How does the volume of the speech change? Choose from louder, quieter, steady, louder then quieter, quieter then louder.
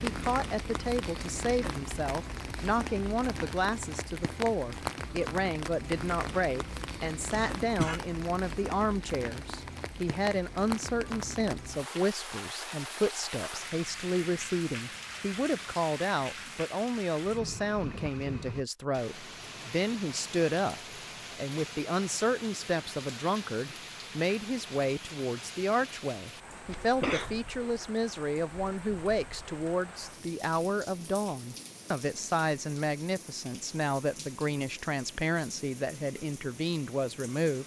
steady.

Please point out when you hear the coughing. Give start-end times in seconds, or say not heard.
7.3-8.0, 26.7-27.4.